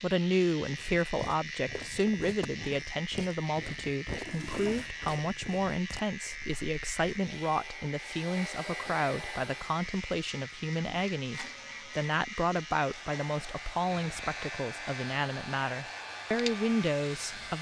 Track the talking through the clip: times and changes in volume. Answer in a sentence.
You can hear the talking from 0.0 to 17.5 s, at a steady volume.